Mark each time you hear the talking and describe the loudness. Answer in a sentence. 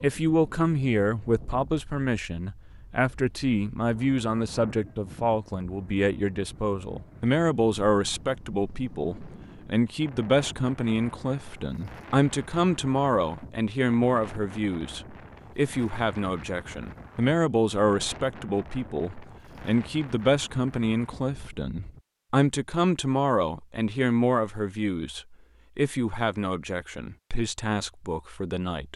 The talking can be heard from 0.0 to 28.9 s, at a steady volume.